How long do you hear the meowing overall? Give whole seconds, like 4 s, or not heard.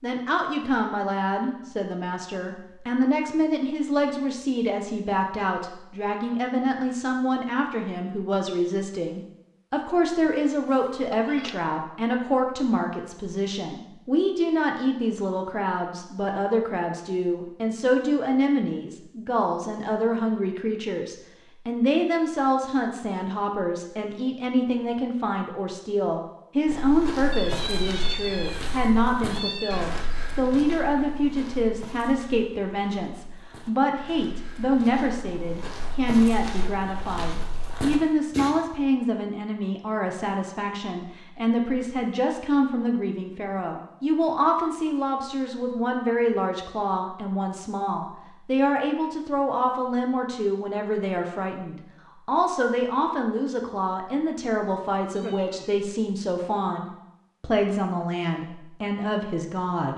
4 s.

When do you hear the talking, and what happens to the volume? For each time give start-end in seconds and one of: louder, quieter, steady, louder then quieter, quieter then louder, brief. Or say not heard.
0.0-59.9 steady.